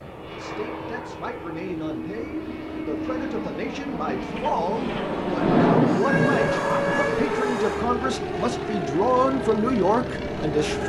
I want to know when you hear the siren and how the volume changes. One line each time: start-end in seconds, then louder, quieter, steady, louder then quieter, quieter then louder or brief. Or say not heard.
6.0-10.8 quieter.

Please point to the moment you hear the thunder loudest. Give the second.
6 s.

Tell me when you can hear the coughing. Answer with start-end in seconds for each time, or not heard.
not heard.